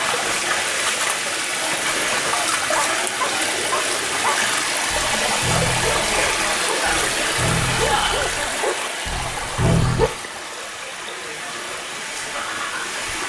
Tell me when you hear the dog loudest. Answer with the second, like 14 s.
10 s.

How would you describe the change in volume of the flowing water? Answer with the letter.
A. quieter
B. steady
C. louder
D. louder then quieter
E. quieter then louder
A.